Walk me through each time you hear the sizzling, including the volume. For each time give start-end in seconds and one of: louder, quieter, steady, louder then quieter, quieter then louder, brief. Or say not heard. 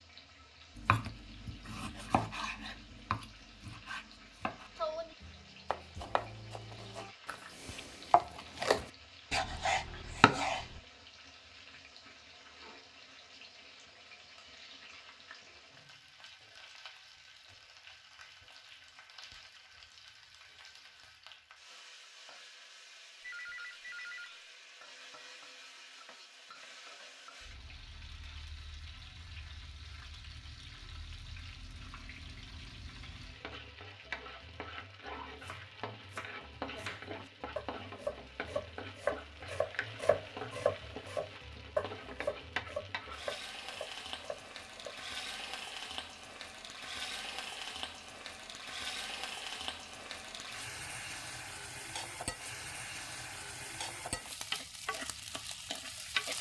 0.0-56.3 louder.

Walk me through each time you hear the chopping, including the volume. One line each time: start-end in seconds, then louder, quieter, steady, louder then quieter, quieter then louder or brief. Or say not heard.
0.8-10.8 louder
35.3-45.1 louder then quieter.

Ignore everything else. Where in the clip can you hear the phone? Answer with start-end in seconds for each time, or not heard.
23.2-24.3.